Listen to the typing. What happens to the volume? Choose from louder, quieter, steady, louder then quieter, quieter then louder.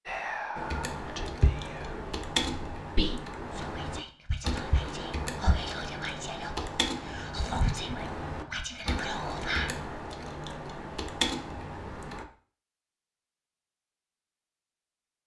steady.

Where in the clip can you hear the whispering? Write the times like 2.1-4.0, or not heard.
0.1-9.7.